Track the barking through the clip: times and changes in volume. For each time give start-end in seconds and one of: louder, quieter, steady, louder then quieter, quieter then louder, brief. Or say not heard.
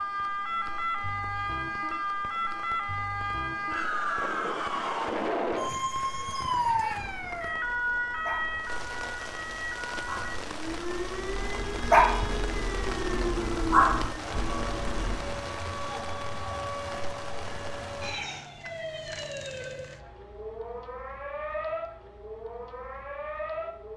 7.0-15.3 louder.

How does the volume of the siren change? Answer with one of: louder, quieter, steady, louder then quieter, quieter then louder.
quieter.